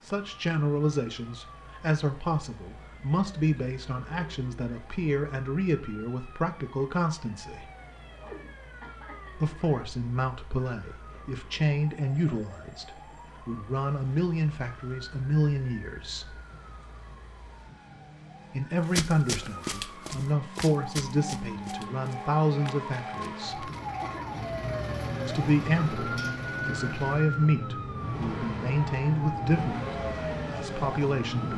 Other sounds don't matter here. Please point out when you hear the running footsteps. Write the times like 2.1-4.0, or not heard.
18.9-24.1.